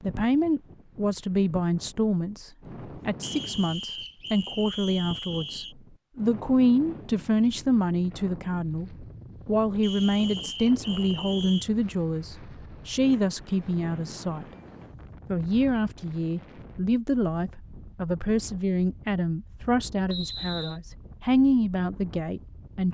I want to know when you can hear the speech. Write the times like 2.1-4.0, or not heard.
0.0-14.4, 15.3-22.8.